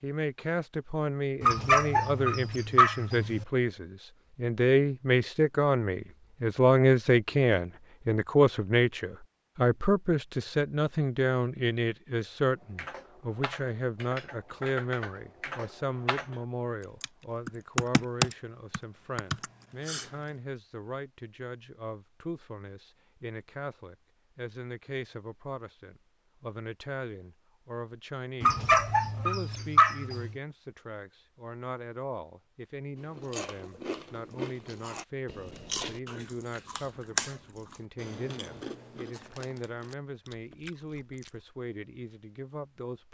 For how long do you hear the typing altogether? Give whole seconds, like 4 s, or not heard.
7 s.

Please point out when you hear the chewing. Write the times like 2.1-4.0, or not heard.
33.0-41.5.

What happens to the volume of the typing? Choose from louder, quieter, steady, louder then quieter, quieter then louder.
louder.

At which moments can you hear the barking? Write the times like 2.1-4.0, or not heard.
1.4-3.5, 28.4-30.4.